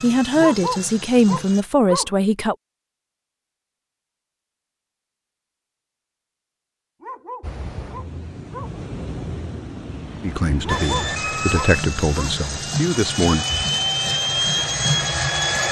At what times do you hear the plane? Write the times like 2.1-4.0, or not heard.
0.0-1.6, 10.7-15.6.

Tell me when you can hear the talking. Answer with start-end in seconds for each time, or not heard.
0.0-2.5, 10.2-13.4.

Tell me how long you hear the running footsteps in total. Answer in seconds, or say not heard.
not heard.